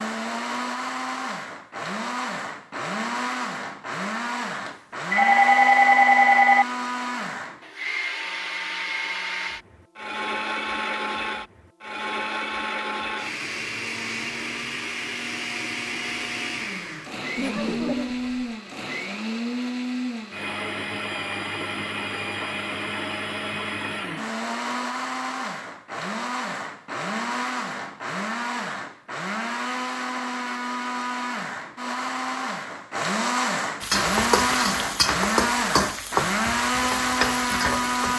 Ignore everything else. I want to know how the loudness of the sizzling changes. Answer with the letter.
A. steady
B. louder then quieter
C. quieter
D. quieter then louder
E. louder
D.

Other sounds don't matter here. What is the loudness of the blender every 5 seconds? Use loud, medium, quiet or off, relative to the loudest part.
medium, medium, medium, medium, medium, medium, loud, loud.